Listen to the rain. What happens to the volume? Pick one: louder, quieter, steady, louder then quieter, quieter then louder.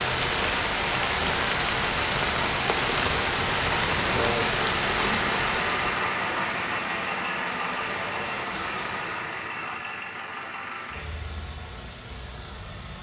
quieter.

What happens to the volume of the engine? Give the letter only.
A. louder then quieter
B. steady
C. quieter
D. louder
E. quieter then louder
A.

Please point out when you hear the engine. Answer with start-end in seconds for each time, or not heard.
0.0-12.9.